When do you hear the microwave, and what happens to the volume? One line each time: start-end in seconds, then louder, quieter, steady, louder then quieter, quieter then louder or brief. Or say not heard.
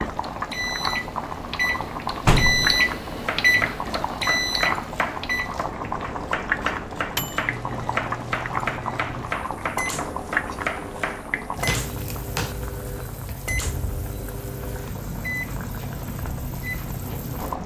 0.1-17.5 quieter.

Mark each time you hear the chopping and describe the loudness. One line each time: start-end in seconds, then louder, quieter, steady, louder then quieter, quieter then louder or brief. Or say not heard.
3.2-11.8 steady.